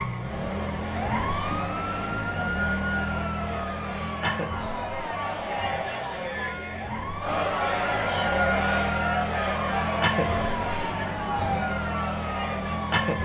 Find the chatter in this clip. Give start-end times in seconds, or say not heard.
0.1-13.2.